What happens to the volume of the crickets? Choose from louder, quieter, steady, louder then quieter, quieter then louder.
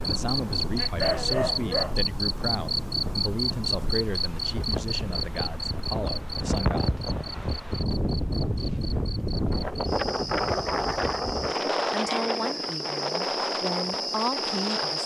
quieter then louder.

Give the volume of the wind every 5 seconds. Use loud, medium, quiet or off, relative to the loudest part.
medium, loud, loud.